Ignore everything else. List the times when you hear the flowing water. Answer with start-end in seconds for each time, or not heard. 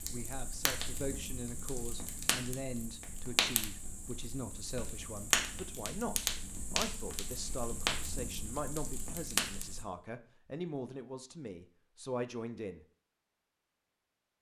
not heard.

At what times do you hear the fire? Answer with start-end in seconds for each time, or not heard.
0.0-9.8.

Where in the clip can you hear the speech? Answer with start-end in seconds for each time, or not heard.
0.1-12.8.